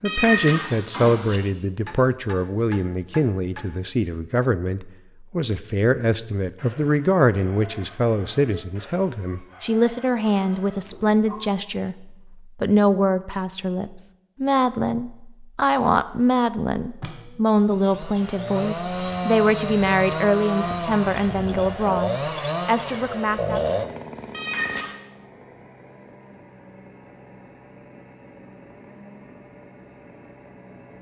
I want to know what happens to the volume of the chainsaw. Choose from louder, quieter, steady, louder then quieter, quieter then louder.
quieter.